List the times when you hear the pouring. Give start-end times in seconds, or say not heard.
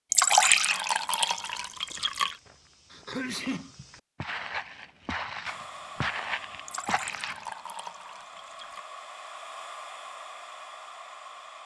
0.1-2.4, 6.7-8.8.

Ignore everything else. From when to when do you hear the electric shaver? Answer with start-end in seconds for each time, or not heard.
not heard.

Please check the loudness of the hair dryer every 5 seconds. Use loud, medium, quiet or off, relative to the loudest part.
off, loud, loud.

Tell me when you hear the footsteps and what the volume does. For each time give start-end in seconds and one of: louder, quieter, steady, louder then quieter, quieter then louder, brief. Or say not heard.
1.3-7.5 louder.